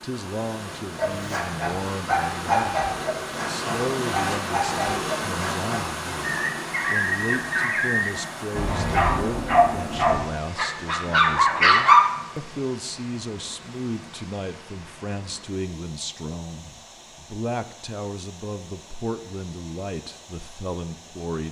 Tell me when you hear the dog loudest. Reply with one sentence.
The volume of the dog peaks at 12 seconds.